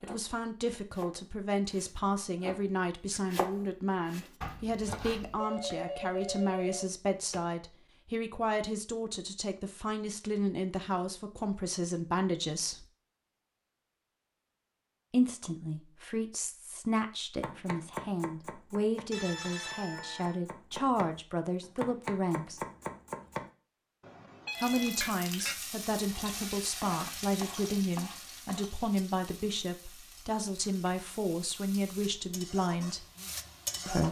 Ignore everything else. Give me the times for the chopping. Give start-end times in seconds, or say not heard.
0.0-5.4, 17.4-23.5.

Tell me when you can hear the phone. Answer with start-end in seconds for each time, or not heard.
5.3-7.4, 19.1-20.4, 24.0-25.1.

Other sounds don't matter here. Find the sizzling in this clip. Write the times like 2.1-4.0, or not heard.
24.5-34.0.